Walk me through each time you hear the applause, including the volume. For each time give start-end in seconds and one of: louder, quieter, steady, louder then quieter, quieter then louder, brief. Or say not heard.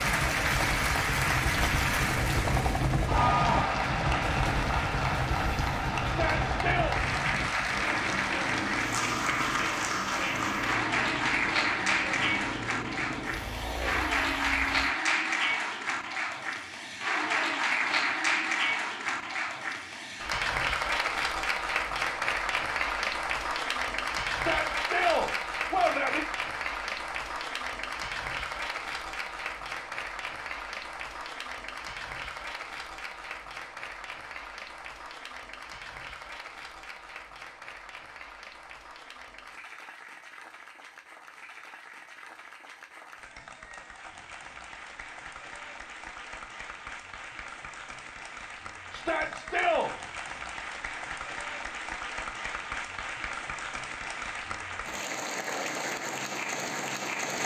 0.0-57.4 quieter then louder.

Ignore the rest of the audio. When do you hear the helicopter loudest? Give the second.
3 s.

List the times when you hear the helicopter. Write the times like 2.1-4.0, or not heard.
0.0-14.9.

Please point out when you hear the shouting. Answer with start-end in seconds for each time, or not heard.
6.0-7.0, 24.3-26.2, 48.9-49.9.